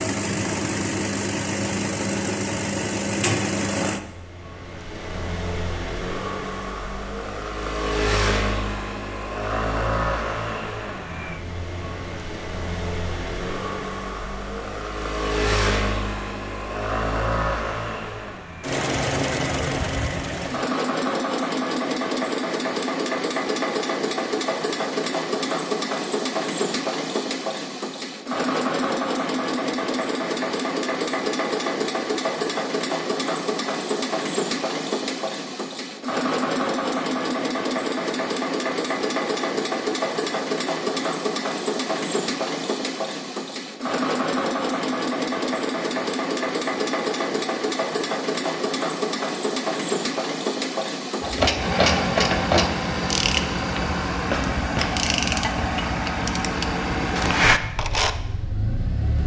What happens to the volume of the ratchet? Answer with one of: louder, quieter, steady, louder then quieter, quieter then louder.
quieter then louder.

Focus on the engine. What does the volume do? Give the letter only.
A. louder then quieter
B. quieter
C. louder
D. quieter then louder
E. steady
E.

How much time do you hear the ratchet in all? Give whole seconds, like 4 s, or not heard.
7 s.